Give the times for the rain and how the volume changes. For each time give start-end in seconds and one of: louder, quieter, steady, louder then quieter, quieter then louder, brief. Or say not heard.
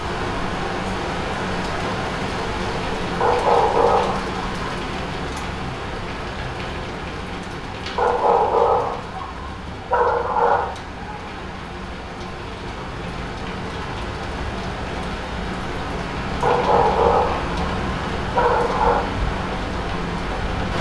0.0-20.7 quieter then louder.